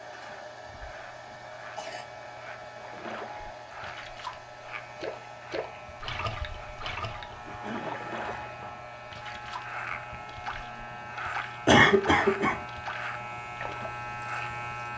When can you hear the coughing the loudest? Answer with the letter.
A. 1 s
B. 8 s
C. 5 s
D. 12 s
D.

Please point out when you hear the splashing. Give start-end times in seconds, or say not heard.
2.8-14.0.